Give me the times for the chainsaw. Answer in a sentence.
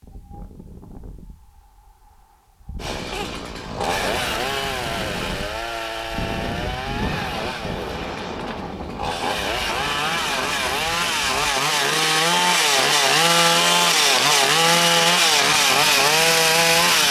You can hear the chainsaw from 2.8 to 17.0 s.